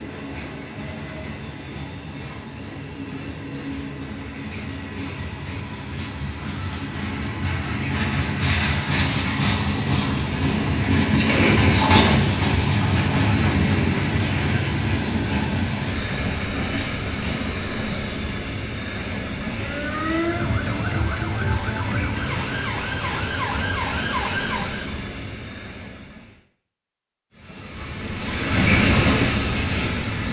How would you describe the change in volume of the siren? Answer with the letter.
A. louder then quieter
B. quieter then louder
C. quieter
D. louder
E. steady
E.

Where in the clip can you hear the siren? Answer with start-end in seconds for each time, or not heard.
19.5-24.9.